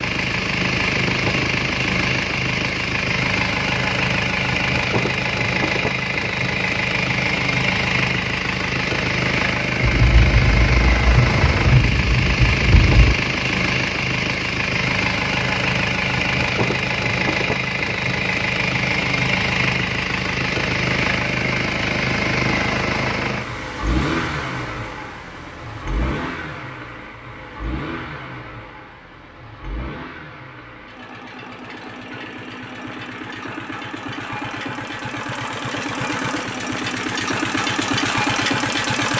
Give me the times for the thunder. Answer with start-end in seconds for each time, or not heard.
9.8-13.2.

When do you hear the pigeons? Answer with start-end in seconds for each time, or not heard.
not heard.